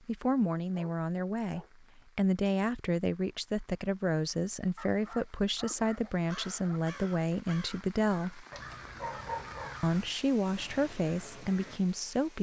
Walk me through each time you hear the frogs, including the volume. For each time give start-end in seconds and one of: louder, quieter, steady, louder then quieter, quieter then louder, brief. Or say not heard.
not heard.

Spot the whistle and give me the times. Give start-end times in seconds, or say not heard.
not heard.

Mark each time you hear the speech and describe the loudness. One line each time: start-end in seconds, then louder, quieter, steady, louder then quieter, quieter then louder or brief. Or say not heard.
0.1-8.4 steady
9.8-12.3 brief.